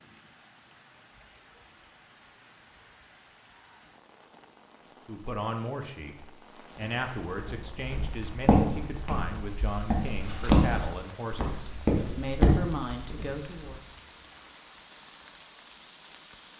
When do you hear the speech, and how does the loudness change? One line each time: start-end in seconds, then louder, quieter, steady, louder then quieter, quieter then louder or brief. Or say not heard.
5.0-13.8 steady.